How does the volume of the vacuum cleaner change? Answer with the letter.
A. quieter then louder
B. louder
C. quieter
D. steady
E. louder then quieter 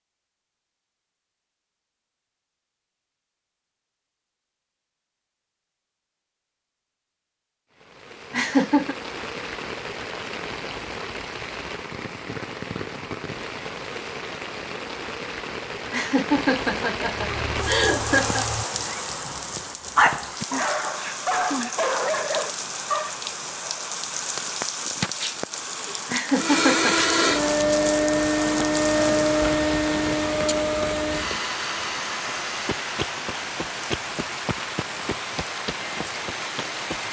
C.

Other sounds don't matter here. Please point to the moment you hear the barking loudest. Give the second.
20 s.